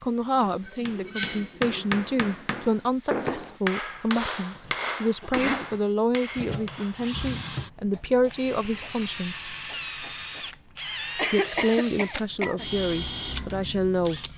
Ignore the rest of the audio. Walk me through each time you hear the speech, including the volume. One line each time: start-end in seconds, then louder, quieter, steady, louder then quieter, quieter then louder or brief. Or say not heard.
0.0-9.4 steady
11.3-14.2 brief.